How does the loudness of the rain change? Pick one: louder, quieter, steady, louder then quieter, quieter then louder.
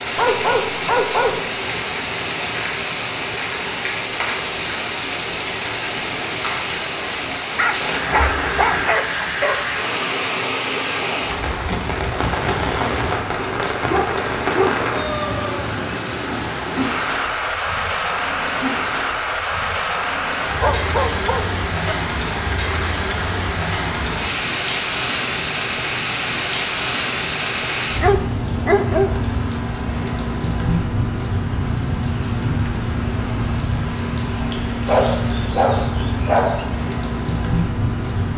steady.